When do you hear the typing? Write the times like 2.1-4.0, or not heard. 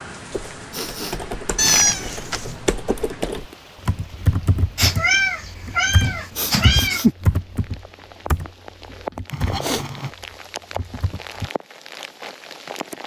0.3-11.5.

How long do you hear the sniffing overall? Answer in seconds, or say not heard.
3 s.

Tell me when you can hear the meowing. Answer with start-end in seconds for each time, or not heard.
1.6-2.5, 4.8-7.2, 9.3-10.1.